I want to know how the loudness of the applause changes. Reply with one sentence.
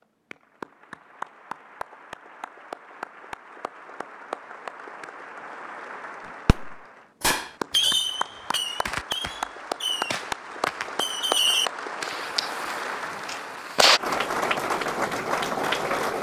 The loudness of the applause goes up.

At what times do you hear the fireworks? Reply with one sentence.
The fireworks can be heard from 6.5 to 14.0 s.